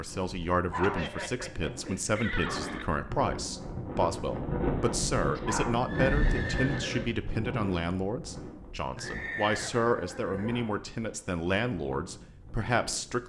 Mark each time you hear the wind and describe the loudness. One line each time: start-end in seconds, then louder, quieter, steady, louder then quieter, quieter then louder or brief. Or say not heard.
0.0-13.2 louder then quieter.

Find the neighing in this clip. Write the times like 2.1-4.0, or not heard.
0.8-2.9, 5.3-7.2, 8.9-10.7.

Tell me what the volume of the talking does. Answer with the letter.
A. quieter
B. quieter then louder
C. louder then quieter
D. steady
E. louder
D.